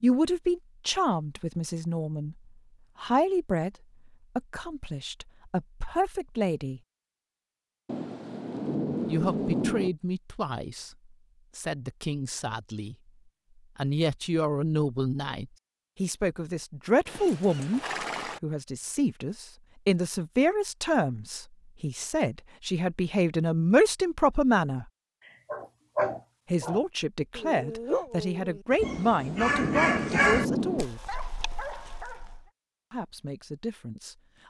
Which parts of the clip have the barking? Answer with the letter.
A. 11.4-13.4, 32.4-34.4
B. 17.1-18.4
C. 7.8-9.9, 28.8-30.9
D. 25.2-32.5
D.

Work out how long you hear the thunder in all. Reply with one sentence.
You can hear the thunder for 4 seconds altogether.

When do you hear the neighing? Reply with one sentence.
You can hear the neighing from 17.1 to 18.4 s.